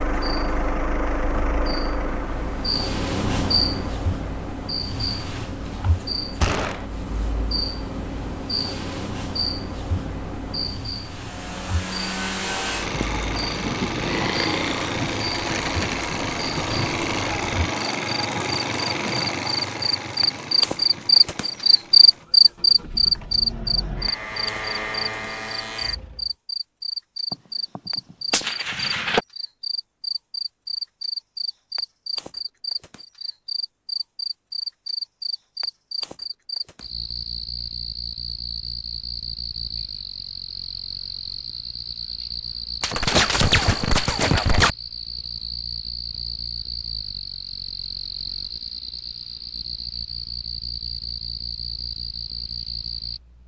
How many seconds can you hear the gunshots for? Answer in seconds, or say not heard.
4 s.